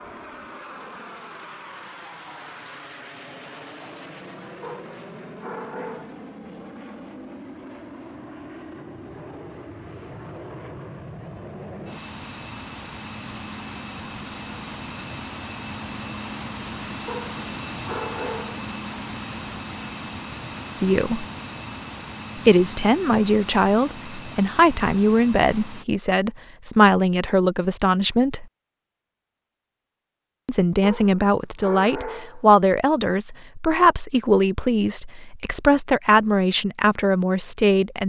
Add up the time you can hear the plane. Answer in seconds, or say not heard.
26 s.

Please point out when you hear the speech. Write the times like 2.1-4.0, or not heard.
20.8-21.2, 22.4-28.4, 30.4-38.0.